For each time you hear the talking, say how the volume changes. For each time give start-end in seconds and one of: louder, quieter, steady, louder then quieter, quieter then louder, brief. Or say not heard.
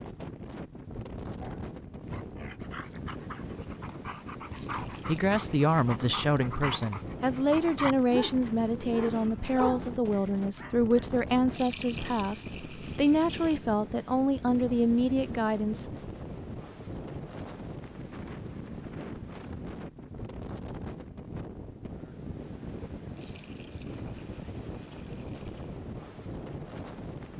5.0-15.9 steady.